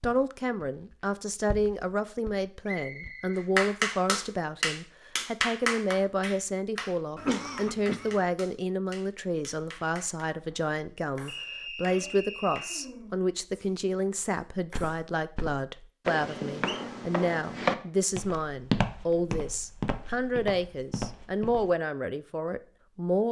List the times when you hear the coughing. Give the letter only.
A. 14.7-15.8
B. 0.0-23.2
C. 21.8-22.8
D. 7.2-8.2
D.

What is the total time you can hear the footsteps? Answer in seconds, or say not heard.
10 s.